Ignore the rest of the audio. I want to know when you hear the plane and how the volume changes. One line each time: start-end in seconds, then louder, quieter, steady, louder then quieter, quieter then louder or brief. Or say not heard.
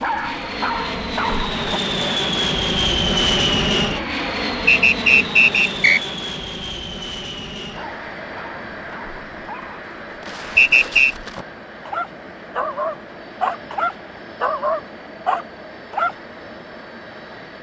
0.0-17.5 quieter.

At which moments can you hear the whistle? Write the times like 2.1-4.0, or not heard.
4.7-6.0, 10.6-11.2.